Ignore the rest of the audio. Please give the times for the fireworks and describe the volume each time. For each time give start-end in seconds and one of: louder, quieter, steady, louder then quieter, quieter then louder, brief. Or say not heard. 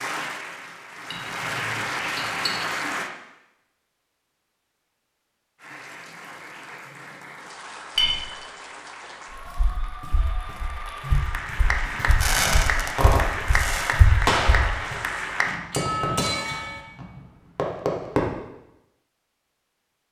12.1-18.3 quieter then louder.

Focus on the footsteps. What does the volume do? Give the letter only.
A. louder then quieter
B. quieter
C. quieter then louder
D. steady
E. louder
E.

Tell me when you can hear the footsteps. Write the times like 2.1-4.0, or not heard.
9.4-14.9.